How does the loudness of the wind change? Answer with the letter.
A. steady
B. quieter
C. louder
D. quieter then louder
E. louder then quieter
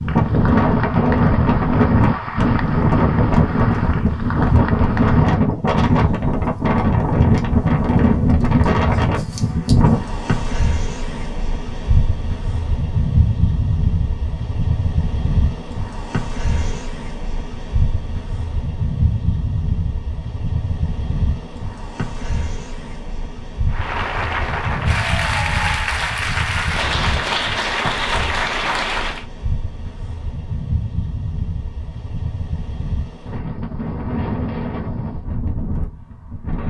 B.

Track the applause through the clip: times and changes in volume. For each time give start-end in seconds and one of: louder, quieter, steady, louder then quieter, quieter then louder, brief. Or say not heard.
0.0-5.5 steady
23.7-29.2 steady.